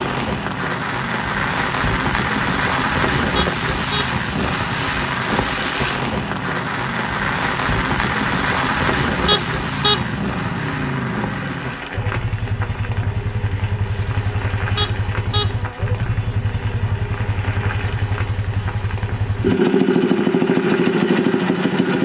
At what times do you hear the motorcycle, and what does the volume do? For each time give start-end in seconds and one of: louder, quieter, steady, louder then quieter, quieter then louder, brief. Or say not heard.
0.0-22.0 louder.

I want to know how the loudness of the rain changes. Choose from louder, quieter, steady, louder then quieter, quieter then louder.
quieter.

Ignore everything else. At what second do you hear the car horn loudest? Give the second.
10 s.